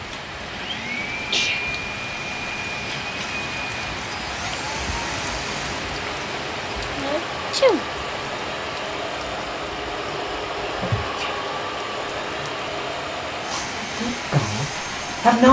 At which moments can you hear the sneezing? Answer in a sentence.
You can hear the sneezing from 1.3 to 1.8 s, from 7.0 to 7.8 s and from 10.6 to 11.4 s.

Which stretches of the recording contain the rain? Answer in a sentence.
The rain can be heard from 0.0 to 15.4 s.